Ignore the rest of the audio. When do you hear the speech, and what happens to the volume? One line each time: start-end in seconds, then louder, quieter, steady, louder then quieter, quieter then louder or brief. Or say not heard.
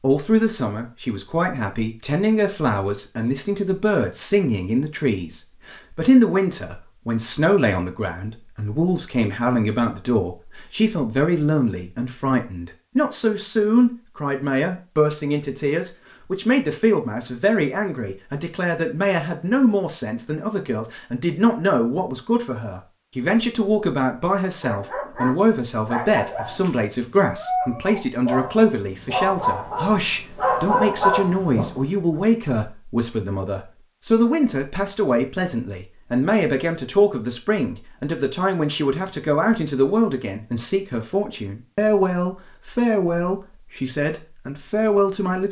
0.0-45.4 steady.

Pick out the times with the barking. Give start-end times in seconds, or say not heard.
24.4-31.8.